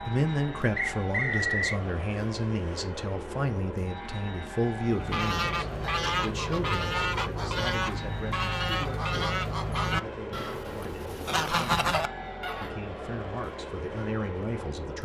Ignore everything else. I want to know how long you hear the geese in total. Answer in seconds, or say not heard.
8 s.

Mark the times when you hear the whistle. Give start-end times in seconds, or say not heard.
0.8-1.8.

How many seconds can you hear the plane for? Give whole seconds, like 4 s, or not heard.
15 s.